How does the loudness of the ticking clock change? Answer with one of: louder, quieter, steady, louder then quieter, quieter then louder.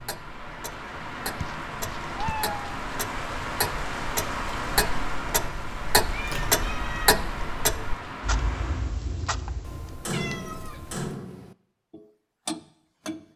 louder then quieter.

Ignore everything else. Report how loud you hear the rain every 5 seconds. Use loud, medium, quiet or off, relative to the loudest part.
loud, loud, off.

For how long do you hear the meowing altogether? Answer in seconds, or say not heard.
4 s.